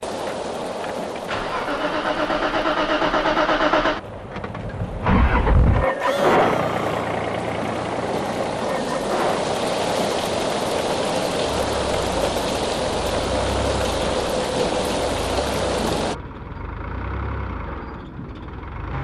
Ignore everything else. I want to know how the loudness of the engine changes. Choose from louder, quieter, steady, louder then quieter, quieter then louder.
quieter.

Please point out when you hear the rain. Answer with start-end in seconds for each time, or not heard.
0.0-16.1.